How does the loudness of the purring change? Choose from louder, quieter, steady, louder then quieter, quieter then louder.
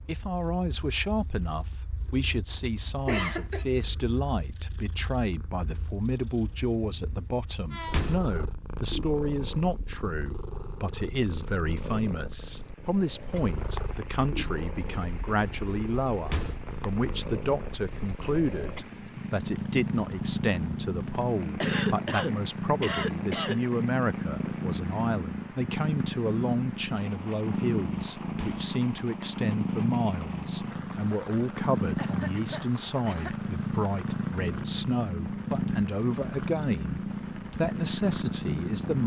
louder.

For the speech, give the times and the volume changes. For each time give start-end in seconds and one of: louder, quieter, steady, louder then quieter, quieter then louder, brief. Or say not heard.
0.1-39.0 steady.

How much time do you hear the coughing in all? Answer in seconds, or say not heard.
4 s.